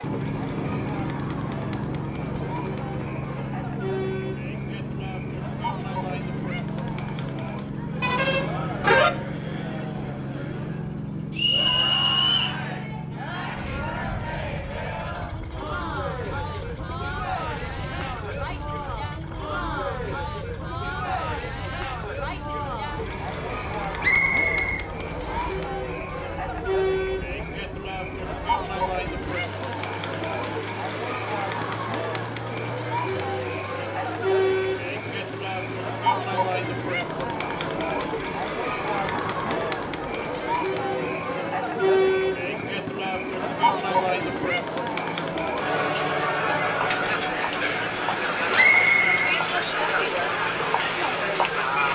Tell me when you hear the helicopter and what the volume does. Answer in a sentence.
The helicopter can be heard from 0.0 to 51.9 s, getting quieter.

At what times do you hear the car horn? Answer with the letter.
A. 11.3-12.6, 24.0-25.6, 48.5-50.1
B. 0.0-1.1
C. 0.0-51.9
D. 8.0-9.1
D.